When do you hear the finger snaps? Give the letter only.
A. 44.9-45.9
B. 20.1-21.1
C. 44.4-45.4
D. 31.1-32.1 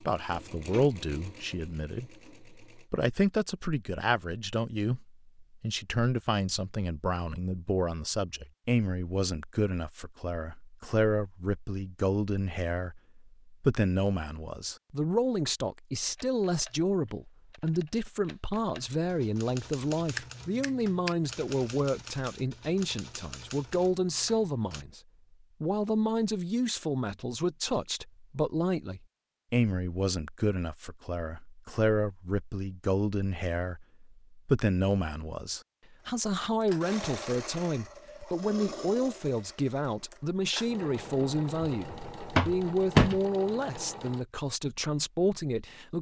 B.